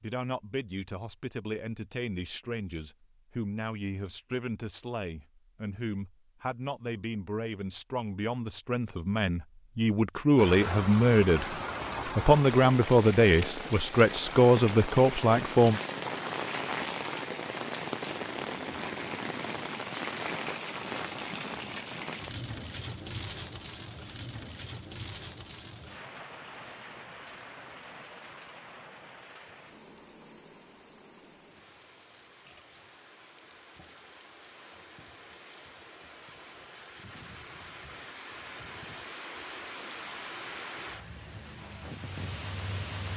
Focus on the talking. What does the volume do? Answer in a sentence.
The loudness of the talking goes up.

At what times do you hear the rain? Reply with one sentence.
The rain can be heard from 10.3 to 43.1 s.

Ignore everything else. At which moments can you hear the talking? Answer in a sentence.
You can hear the talking from 0.0 to 15.8 s.